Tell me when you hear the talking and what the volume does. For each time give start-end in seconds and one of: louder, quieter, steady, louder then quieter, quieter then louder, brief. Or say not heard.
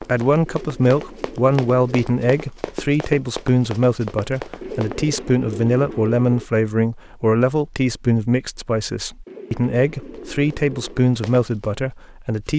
0.0-12.5 steady.